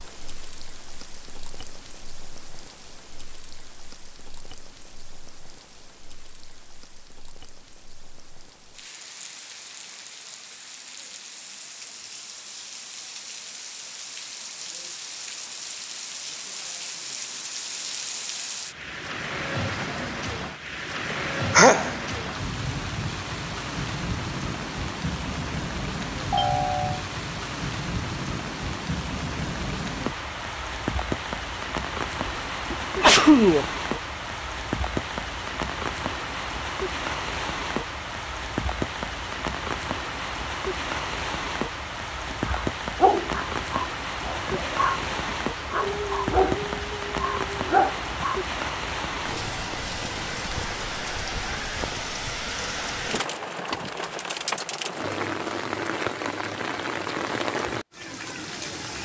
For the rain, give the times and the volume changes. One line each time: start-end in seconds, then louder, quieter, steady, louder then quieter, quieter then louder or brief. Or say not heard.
0.0-59.0 louder.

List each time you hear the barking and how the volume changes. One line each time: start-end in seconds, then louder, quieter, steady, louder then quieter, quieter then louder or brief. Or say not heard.
42.2-48.5 quieter then louder.